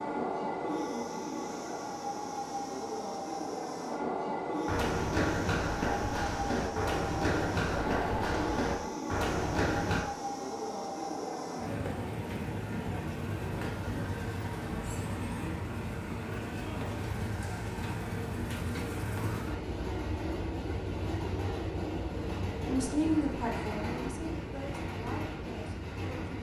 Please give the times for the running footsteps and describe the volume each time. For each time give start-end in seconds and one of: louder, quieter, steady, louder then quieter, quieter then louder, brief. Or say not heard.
4.7-10.1 steady.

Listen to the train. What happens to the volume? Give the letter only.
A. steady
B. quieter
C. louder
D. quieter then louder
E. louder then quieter
A.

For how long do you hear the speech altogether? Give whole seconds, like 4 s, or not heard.
4 s.